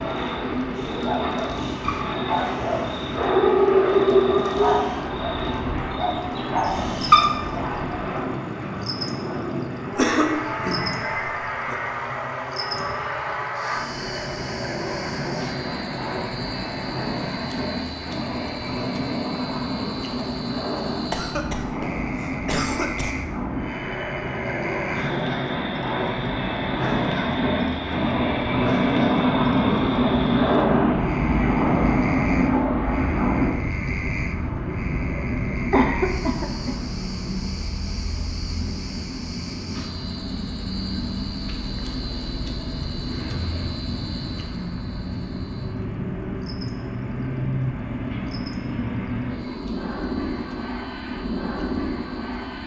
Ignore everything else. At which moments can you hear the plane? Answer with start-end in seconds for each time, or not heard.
0.0-52.6.